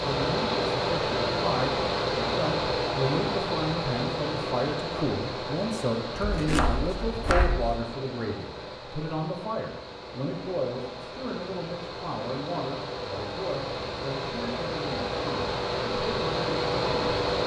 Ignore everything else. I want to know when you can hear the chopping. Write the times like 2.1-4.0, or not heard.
6.2-7.8.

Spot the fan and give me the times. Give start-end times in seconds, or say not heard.
0.0-17.4.